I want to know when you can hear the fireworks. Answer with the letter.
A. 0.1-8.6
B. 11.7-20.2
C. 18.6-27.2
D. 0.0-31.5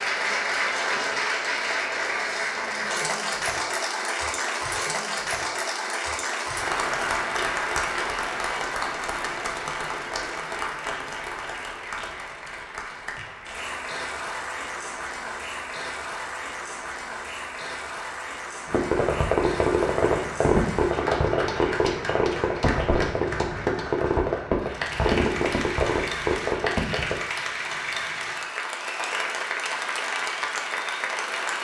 C.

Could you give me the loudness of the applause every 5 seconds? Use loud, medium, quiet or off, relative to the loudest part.
loud, loud, medium, medium, medium, loud, loud.